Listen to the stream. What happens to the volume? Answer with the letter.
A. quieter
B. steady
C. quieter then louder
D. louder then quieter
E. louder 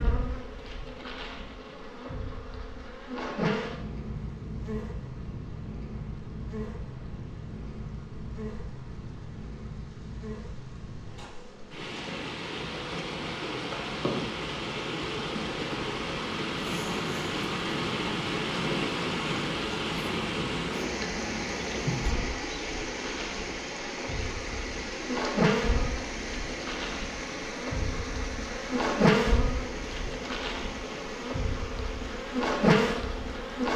D.